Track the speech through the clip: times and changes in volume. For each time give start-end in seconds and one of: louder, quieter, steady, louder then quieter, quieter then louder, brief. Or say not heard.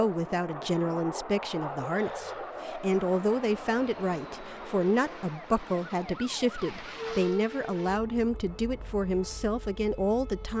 0.0-10.5 steady.